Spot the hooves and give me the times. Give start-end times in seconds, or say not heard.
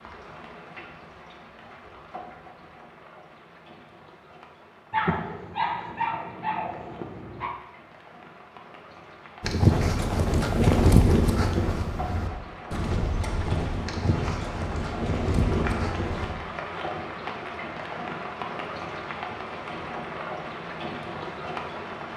9.4-16.4.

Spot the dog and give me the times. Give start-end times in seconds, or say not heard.
4.9-7.5.